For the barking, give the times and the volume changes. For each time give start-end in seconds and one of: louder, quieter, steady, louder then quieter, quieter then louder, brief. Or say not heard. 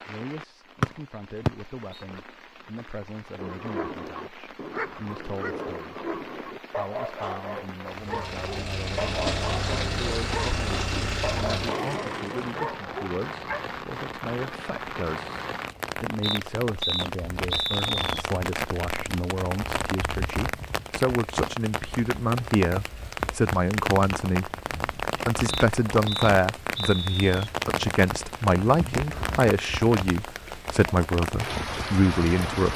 3.4-13.6 steady.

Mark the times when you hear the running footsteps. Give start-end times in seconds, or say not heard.
not heard.